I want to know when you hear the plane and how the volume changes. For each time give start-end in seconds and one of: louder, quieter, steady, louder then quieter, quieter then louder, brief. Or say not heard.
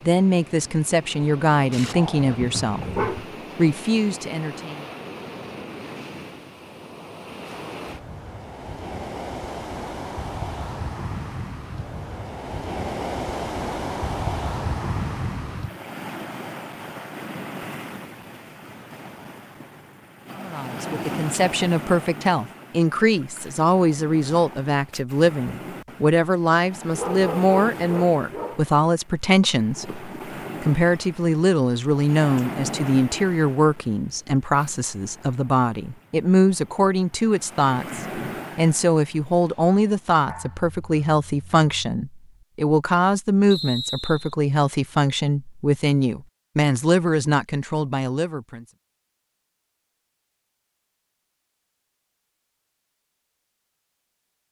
not heard.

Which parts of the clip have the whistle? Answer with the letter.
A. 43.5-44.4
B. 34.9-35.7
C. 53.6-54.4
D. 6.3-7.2
A.